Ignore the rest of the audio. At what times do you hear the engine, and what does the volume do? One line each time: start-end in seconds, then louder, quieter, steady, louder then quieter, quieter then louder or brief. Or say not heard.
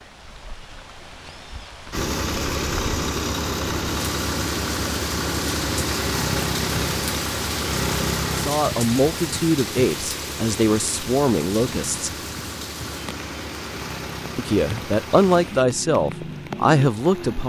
1.9-17.4 quieter.